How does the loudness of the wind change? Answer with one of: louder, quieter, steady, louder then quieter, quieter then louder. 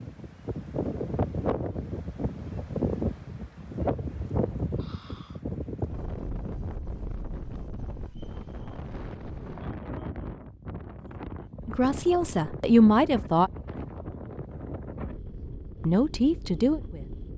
quieter.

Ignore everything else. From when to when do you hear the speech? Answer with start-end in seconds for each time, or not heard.
11.7-13.5, 15.8-17.2.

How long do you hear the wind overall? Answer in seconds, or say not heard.
17 s.